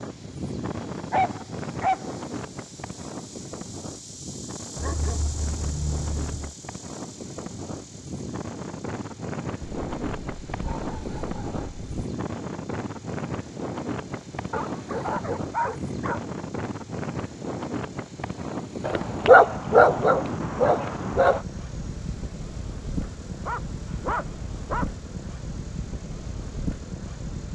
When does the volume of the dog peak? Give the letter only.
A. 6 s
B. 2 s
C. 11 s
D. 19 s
D.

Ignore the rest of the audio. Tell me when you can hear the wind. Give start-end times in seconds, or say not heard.
0.0-27.5.